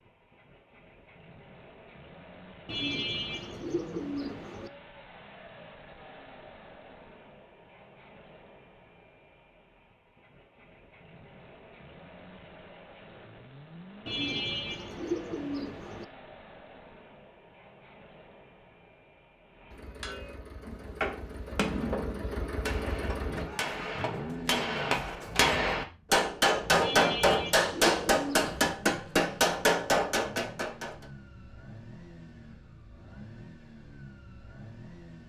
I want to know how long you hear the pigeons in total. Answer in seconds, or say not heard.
6 s.